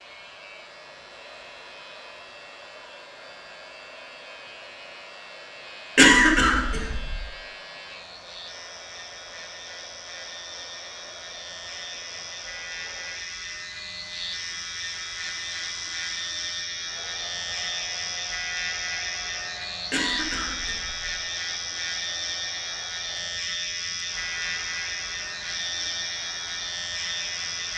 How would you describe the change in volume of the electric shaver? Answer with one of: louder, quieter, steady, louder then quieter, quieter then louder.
louder.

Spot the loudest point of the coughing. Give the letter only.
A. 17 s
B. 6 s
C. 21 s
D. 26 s
B.